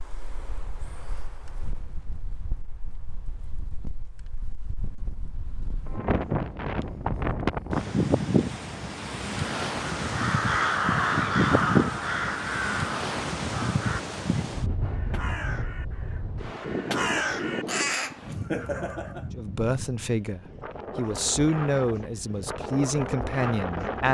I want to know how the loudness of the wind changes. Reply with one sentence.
The loudness of the wind goes up, then down.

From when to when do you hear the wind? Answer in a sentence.
The wind can be heard from 0.0 to 24.0 s.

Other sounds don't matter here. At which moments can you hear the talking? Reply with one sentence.
You can hear the talking from 19.4 to 24.0 s.